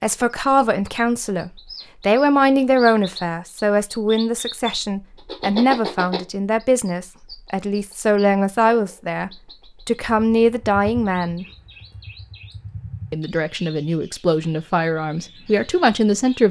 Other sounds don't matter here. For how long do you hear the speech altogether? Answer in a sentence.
The speech can be heard for 15 seconds in total.